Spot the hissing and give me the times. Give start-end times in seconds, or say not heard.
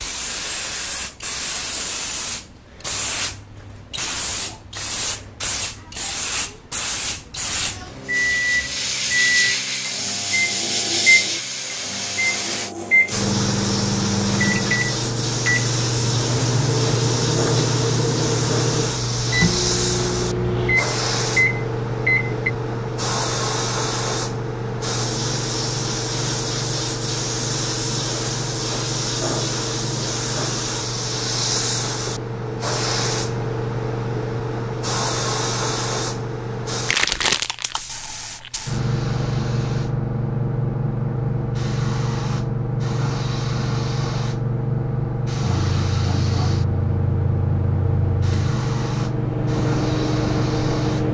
0.0-51.0.